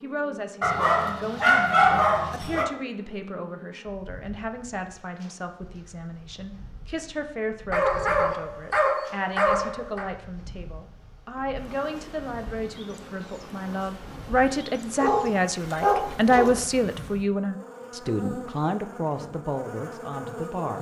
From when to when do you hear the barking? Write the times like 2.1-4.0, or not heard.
0.6-2.6, 7.7-10.1, 14.9-16.6.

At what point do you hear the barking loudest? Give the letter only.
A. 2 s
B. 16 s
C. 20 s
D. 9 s
A.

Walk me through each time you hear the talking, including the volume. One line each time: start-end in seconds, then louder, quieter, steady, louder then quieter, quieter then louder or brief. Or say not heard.
0.0-20.7 louder.